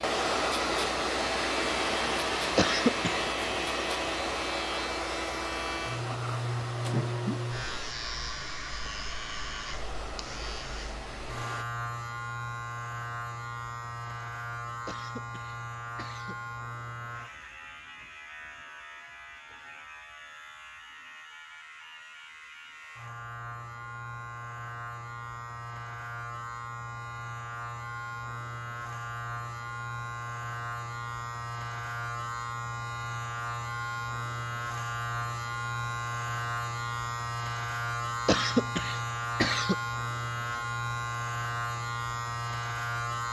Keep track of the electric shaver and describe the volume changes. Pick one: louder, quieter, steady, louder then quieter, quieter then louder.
quieter then louder.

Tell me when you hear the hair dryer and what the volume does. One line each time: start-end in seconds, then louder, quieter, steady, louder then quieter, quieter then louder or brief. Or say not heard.
0.0-11.7 quieter.